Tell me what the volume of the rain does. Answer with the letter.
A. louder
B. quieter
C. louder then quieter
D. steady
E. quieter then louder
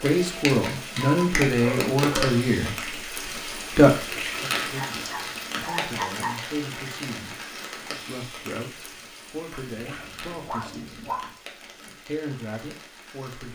B.